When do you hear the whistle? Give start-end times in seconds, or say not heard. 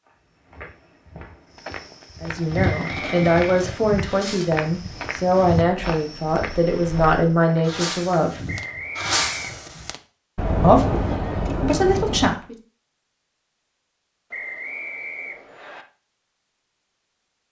2.8-3.5, 8.4-9.8, 14.3-15.8.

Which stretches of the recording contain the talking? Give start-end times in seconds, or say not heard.
2.2-8.4, 10.6-12.6.